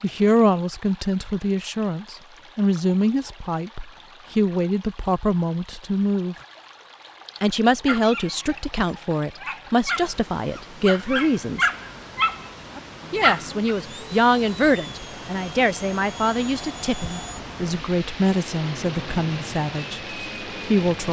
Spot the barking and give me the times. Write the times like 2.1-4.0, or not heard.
7.8-13.8.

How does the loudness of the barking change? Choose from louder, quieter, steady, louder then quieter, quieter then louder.
louder.